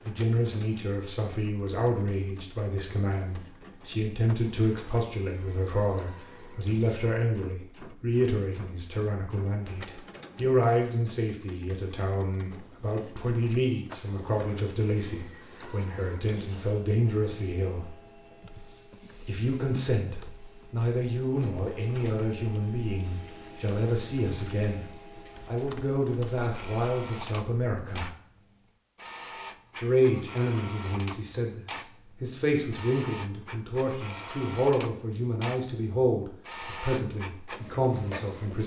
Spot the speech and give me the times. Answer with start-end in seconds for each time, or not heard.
0.1-17.9, 19.2-24.9, 25.4-28.1, 29.8-38.6.